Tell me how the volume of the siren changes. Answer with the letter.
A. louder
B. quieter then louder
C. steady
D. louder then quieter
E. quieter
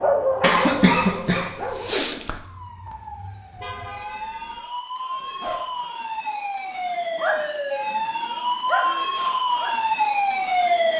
A.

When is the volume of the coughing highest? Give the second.
1 s.